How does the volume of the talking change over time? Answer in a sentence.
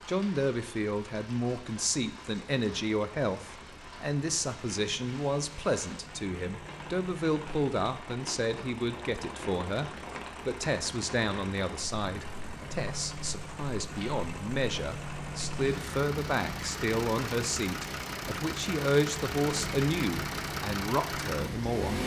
The volume of the talking stays about the same.